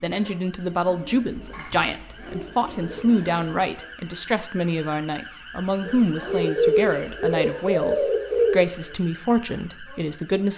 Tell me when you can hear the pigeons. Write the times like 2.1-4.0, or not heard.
0.8-3.8, 5.8-8.7.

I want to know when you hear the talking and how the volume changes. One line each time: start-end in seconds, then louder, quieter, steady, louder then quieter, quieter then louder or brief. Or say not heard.
0.0-10.5 steady.